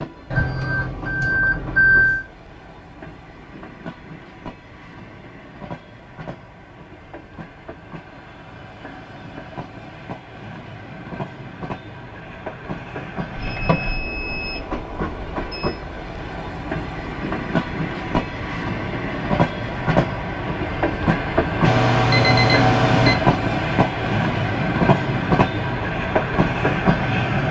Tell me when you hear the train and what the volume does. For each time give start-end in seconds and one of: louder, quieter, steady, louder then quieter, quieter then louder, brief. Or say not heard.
0.0-27.4 louder.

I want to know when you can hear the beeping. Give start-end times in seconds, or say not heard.
0.3-2.2, 13.3-15.8, 21.6-23.1.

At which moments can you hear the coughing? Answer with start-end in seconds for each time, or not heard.
not heard.